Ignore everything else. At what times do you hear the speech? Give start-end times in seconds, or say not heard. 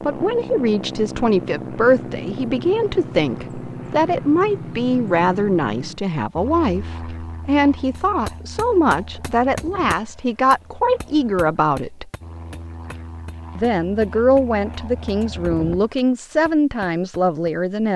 0.0-12.1, 13.6-17.9.